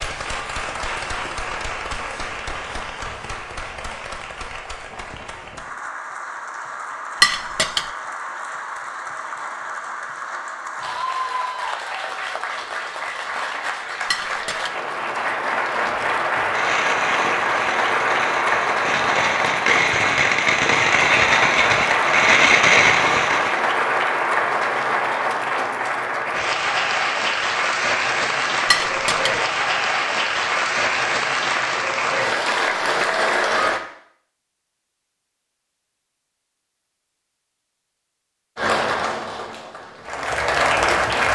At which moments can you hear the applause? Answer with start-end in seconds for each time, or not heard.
0.0-33.8, 38.5-41.3.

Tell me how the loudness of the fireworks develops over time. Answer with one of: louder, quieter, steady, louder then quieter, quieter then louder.
louder.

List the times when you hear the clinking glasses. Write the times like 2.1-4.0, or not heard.
7.2-7.8, 14.1-14.7, 28.7-29.4.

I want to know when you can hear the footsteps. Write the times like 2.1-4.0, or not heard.
not heard.